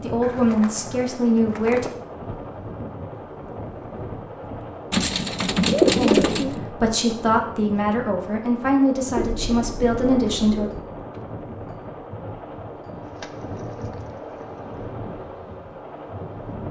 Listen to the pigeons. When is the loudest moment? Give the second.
6 s.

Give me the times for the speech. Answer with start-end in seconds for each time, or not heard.
0.0-1.9, 6.0-10.7.